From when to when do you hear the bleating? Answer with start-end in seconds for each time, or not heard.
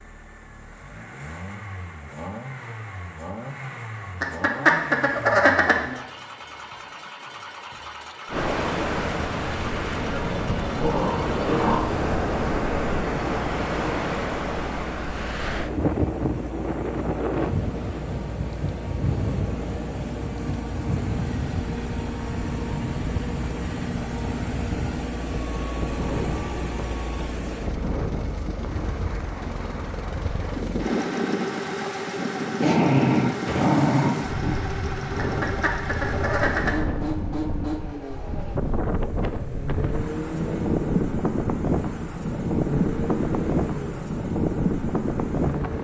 not heard.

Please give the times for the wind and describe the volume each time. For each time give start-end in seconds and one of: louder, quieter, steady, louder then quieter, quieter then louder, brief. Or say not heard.
8.2-45.7 quieter then louder.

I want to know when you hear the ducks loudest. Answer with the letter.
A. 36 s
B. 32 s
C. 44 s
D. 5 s
D.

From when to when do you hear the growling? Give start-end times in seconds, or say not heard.
10.8-11.9, 32.6-34.6.